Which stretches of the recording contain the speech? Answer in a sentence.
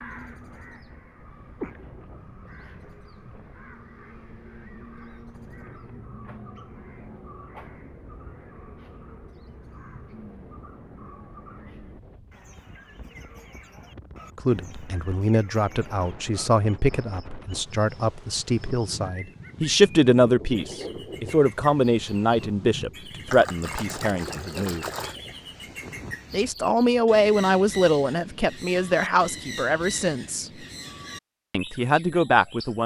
You can hear the speech from 14.3 to 24.9 s, from 26.3 to 30.5 s and from 31.5 to 32.8 s.